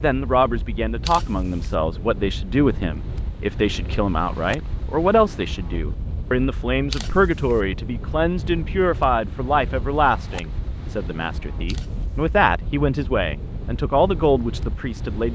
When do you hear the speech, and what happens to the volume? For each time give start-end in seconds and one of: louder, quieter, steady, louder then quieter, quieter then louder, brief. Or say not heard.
0.0-15.2 steady.